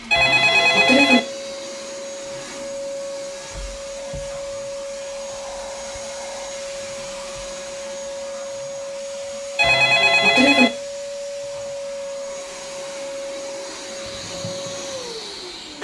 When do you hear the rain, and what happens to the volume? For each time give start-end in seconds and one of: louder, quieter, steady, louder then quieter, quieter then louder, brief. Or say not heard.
not heard.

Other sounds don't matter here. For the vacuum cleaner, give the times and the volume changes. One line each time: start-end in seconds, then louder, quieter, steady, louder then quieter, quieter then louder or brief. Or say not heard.
0.0-15.8 steady.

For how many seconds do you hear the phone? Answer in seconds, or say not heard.
2 s.